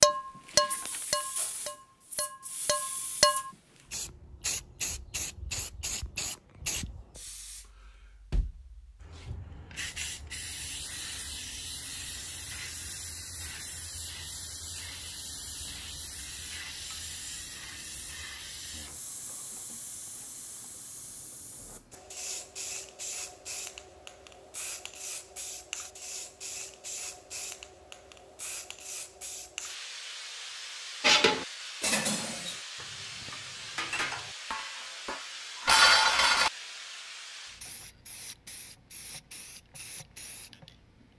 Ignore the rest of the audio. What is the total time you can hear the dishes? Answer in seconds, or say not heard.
9 s.